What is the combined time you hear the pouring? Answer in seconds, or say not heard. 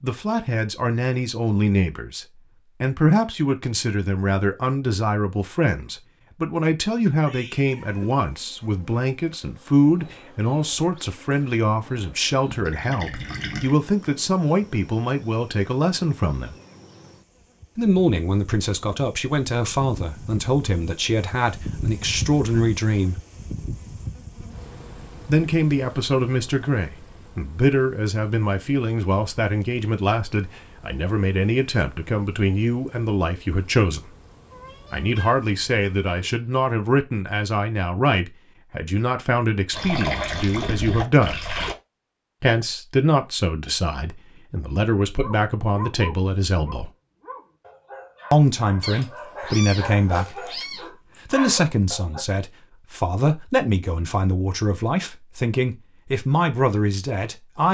3 s.